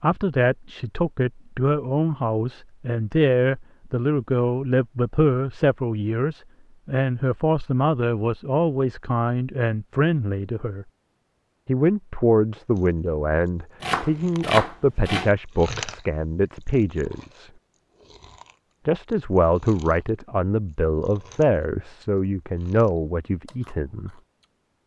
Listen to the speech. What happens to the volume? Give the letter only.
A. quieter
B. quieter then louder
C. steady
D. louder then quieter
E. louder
C.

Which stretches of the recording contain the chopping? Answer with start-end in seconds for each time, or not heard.
13.8-15.3.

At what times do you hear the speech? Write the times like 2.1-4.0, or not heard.
0.0-10.8, 11.7-17.5, 18.9-24.1.